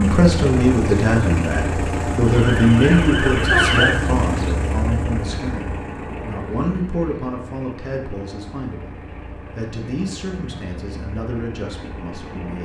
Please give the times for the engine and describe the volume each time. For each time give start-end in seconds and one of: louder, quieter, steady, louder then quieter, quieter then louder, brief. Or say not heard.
0.0-12.6 quieter.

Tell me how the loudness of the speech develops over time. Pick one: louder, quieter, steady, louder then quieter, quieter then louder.
quieter.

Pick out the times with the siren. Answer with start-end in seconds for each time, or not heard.
2.2-4.0.